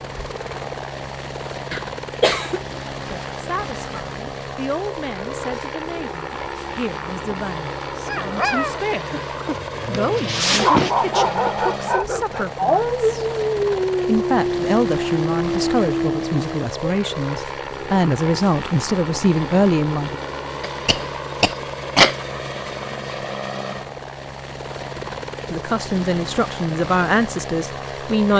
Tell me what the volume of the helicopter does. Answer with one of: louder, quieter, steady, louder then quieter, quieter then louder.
steady.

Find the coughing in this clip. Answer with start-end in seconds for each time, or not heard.
1.7-2.6, 9.9-10.9, 20.6-22.2.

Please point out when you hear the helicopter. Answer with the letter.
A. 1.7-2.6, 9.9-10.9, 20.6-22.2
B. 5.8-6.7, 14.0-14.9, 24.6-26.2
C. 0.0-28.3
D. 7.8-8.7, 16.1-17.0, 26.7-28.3
C.